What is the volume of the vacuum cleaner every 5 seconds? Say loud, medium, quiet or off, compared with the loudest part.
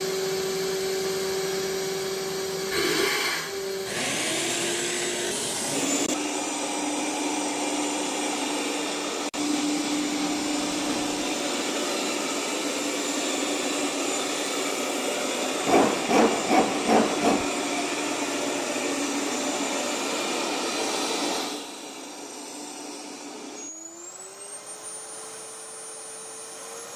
loud, loud, loud, loud, medium, quiet.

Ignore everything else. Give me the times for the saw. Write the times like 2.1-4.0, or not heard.
9.5-11.2, 15.7-17.5.